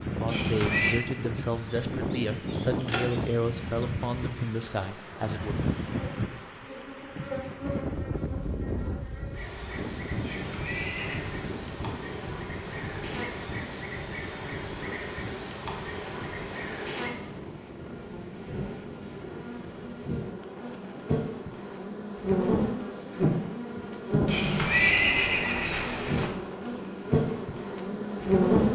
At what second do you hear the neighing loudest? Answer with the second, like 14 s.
25 s.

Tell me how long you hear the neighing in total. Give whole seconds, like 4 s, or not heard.
4 s.